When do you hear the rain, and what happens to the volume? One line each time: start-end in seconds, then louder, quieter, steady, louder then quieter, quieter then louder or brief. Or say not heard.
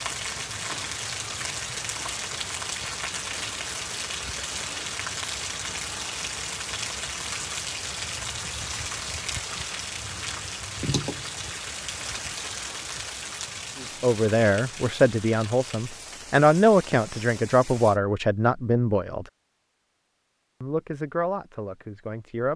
0.0-18.0 quieter.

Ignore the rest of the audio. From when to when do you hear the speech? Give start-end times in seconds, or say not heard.
13.8-19.3, 20.6-22.5.